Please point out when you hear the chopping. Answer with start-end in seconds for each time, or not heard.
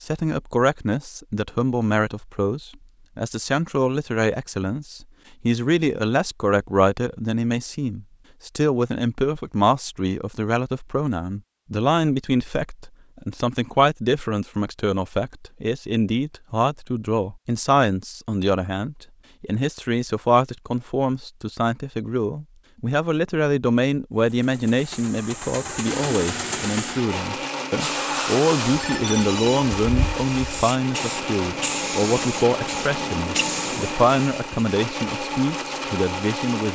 not heard.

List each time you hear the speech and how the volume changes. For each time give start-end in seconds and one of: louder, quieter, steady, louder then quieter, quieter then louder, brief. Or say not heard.
0.0-36.6 steady.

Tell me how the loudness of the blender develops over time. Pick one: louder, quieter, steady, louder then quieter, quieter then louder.
steady.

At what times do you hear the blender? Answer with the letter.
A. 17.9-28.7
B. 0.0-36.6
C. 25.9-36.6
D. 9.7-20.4
C.